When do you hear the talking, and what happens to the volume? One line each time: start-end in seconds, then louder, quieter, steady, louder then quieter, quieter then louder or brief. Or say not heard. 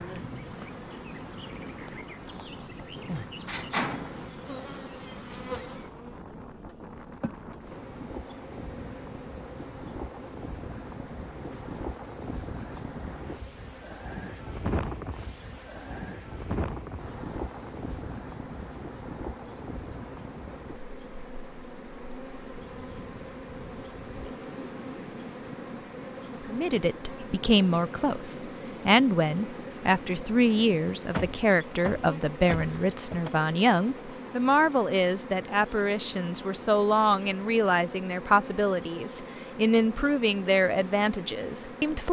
26.4-42.0 steady.